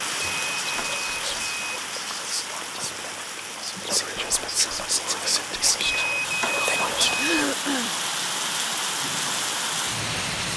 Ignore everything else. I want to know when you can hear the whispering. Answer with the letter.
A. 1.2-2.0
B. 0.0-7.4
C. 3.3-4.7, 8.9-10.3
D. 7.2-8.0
B.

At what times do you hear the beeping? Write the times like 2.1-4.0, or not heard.
0.2-1.6, 5.8-7.3.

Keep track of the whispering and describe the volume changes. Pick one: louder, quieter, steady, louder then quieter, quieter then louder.
louder.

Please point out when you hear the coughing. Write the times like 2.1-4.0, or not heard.
7.2-8.0.